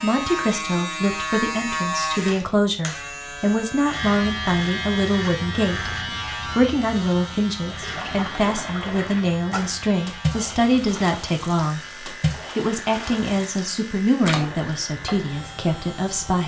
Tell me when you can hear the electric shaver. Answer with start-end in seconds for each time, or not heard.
0.0-16.4.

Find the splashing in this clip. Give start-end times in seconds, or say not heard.
7.7-15.3.